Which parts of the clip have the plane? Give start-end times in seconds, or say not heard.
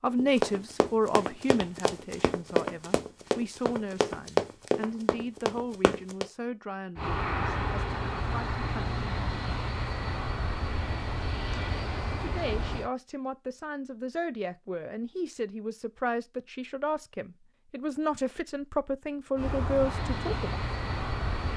7.0-12.9, 19.4-21.5.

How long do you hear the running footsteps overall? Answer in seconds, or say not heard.
6 s.